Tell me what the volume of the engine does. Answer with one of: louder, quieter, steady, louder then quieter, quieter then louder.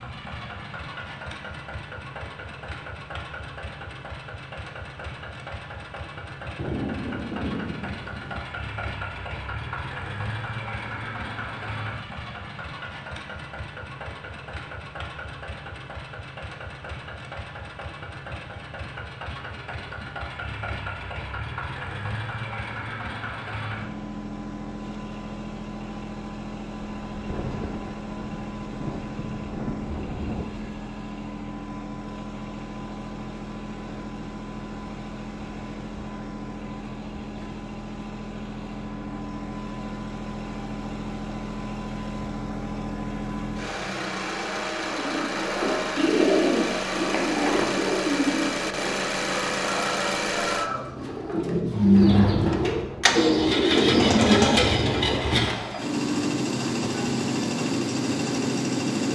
louder.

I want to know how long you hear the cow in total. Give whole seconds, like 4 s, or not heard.
not heard.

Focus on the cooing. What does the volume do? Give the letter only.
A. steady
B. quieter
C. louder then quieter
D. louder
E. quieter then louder
E.